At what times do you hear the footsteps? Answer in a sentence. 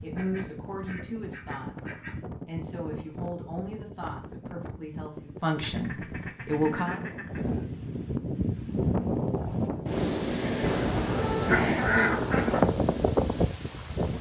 The footsteps can't be heard in this clip.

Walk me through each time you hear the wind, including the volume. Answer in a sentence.
You can hear the wind from 0.0 to 14.1 s, getting louder.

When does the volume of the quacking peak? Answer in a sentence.
The loudest moment of the quacking is at 12 seconds.